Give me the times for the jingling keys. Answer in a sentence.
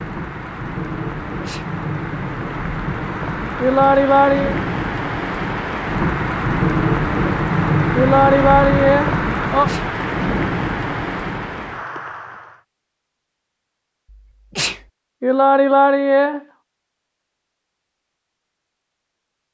The jingling keys can't be heard in this clip.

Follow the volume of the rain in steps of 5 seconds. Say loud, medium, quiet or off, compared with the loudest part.
medium, loud, medium, off.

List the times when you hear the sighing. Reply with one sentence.
The sighing can be heard from 3.6 to 4.5 s, from 8.0 to 9.7 s and from 15.2 to 16.4 s.